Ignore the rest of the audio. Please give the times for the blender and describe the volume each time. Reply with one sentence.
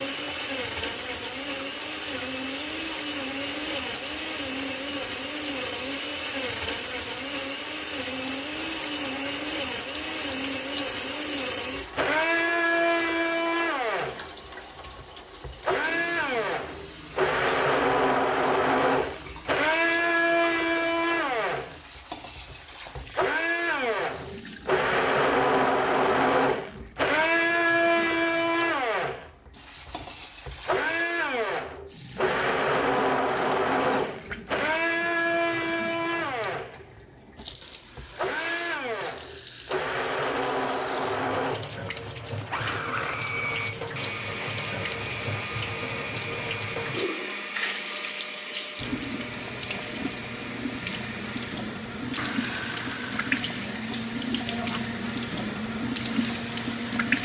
You can hear the blender from 0.0 to 57.1 s, getting louder then quieter.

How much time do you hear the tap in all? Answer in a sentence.
You can hear the tap for 57 seconds altogether.